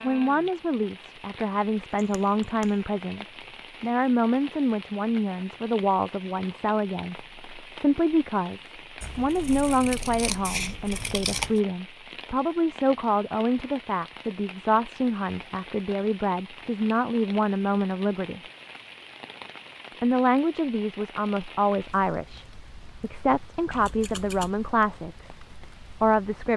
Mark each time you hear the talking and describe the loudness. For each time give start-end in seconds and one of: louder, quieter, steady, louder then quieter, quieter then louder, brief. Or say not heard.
0.0-18.4 steady
20.0-25.4 quieter then louder
26.0-26.5 brief.